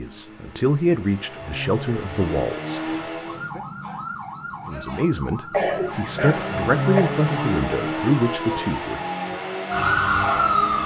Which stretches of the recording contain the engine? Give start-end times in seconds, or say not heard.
0.0-3.5, 5.8-10.8.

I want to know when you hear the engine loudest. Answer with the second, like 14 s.
7 s.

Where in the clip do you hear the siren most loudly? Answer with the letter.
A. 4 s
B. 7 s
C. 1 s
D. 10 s
D.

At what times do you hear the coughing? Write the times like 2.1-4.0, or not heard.
5.5-7.2.